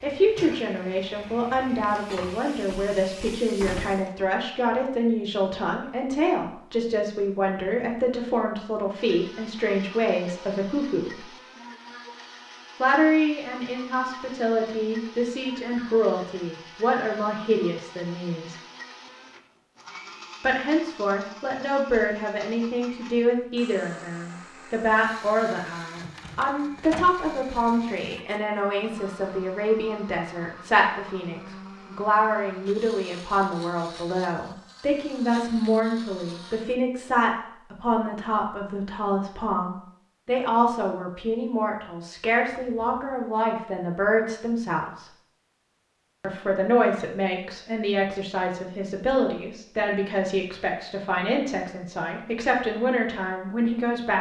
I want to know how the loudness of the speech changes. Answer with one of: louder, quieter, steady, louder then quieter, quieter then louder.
steady.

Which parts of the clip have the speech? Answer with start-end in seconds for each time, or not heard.
0.0-11.2, 12.8-18.6, 20.4-45.0, 46.2-54.1.